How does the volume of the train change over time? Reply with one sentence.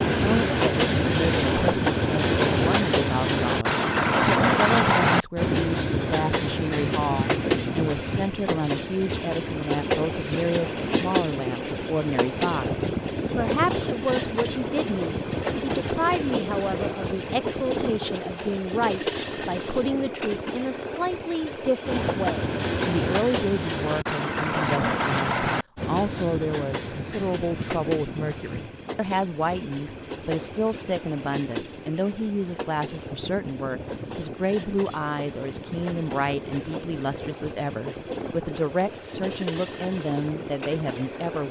The loudness of the train goes down.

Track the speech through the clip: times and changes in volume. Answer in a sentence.
You can hear the speech from 0.1 to 41.4 s, at a steady volume.